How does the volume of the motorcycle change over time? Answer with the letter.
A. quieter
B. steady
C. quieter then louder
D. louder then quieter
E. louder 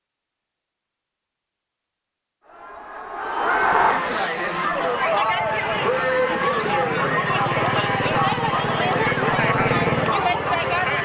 E.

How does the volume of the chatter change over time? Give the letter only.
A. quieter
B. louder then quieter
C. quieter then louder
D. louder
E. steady
E.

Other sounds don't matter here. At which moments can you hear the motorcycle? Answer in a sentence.
The motorcycle can be heard from 5.1 to 10.9 s.